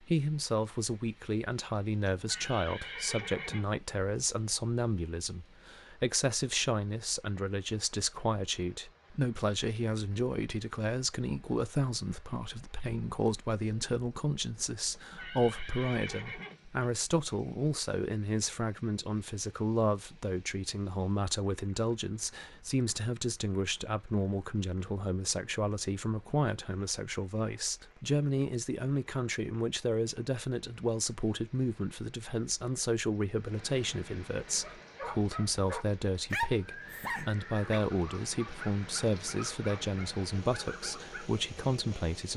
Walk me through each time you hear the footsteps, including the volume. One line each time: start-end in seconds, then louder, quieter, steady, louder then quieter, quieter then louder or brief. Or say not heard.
not heard.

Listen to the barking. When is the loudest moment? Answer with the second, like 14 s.
36 s.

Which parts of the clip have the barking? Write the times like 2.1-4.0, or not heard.
34.5-41.4.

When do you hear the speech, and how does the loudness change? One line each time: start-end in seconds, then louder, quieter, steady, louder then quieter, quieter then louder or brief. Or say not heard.
0.0-42.3 steady.